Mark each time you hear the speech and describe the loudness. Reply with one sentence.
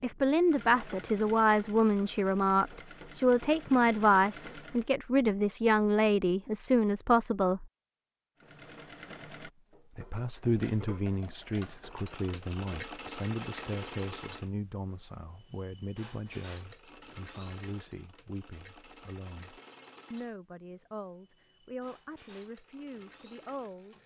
The speech can be heard from 0.0 to 7.7 s, at a steady volume; and from 9.9 to 23.9 s, getting quieter.